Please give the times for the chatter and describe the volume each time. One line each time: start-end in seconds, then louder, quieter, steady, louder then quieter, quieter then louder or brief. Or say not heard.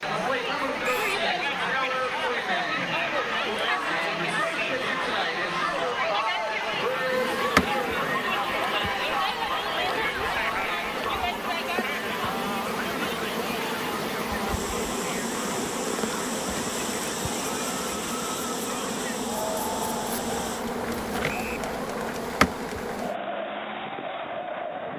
0.0-24.9 quieter.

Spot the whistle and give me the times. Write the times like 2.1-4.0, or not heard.
0.8-1.2, 21.2-21.7.